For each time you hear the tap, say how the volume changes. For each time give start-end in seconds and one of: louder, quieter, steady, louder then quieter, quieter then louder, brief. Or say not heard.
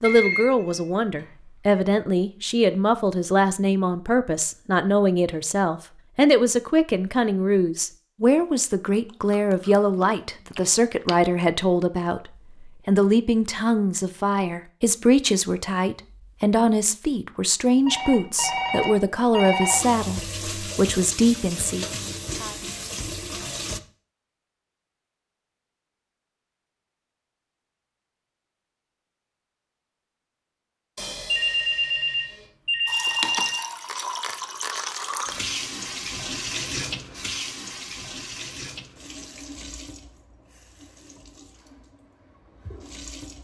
18.6-23.8 steady
32.9-43.3 quieter.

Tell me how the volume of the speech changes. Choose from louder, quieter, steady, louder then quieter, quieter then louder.
steady.